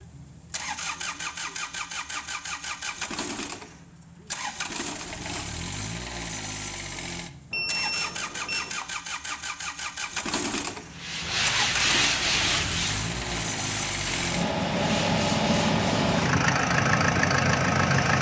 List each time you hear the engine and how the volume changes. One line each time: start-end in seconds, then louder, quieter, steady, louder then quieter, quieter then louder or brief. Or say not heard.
0.0-18.1 louder.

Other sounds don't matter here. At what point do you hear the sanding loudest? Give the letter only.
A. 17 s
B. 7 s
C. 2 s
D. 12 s
D.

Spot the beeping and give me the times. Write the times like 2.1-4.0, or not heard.
7.5-8.8.